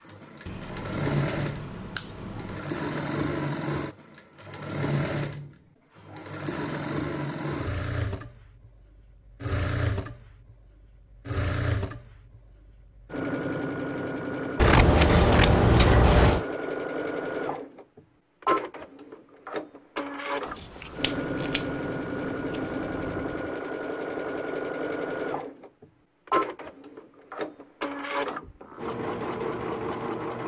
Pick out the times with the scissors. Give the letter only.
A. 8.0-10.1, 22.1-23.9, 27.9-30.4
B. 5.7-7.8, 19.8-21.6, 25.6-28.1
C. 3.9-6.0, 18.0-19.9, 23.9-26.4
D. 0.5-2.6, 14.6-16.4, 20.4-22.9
D.